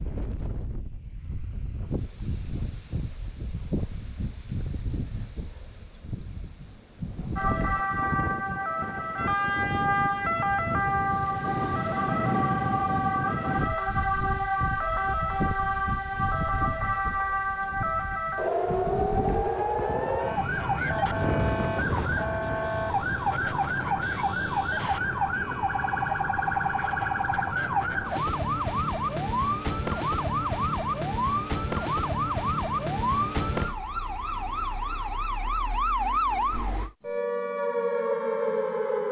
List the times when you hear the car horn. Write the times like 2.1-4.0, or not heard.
not heard.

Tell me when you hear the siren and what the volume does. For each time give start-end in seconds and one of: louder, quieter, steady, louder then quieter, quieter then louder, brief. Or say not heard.
7.3-39.0 steady.